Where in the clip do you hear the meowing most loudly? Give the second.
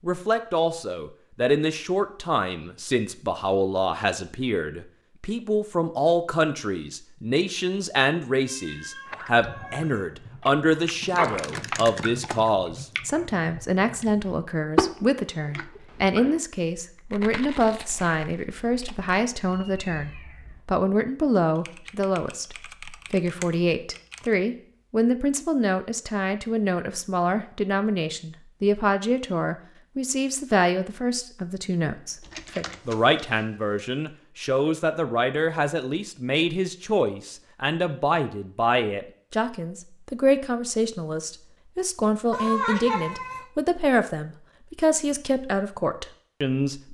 43 s.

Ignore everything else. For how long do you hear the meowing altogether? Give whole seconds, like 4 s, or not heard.
4 s.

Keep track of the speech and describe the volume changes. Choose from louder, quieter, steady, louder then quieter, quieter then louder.
steady.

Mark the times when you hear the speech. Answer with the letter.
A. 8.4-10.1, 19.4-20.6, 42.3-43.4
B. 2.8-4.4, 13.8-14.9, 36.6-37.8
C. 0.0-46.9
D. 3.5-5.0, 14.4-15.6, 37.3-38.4
C.